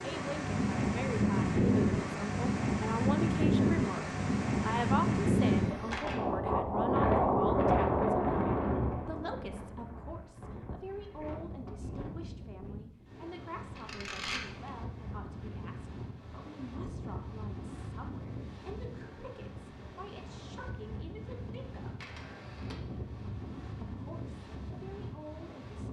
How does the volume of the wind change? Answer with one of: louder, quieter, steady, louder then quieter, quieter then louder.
quieter.